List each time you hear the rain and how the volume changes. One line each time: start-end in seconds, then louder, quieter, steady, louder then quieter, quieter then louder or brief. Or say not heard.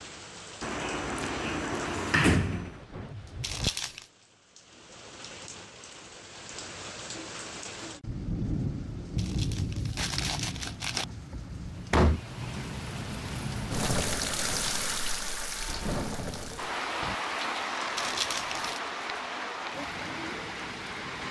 0.0-21.2 louder.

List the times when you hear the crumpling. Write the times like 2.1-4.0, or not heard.
3.4-4.0, 9.2-11.1, 17.9-18.8.